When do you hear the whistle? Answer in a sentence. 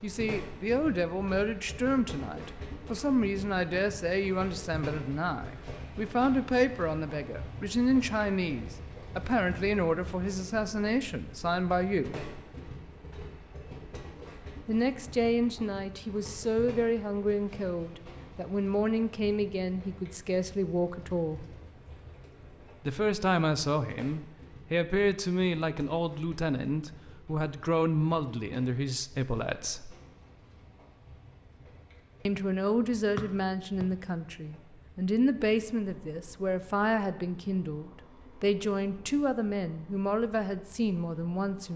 The whistle can be heard from 33.1 to 33.9 s.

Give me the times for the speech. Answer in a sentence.
The speech can be heard from 0.0 to 12.2 s, from 14.7 to 21.4 s, from 22.9 to 29.9 s and from 32.2 to 41.7 s.